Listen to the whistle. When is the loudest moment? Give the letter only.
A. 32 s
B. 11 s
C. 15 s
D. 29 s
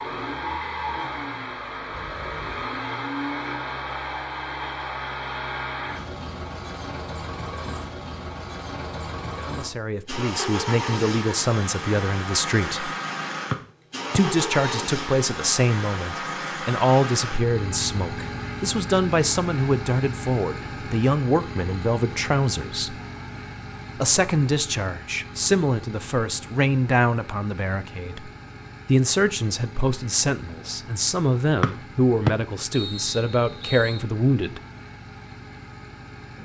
A.